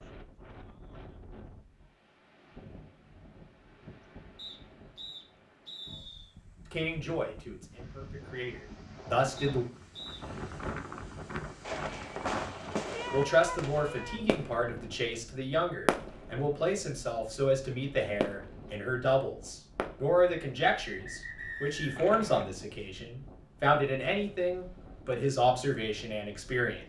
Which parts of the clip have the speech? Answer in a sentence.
The speech can be heard from 6.7 to 9.7 s and from 13.1 to 26.8 s.